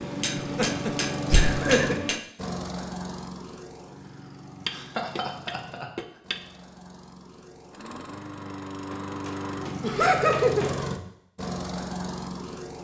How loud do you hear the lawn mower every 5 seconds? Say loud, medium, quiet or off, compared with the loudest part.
loud, medium, loud.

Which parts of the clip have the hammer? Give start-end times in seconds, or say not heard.
0.0-2.2, 4.7-6.4, 8.9-10.8.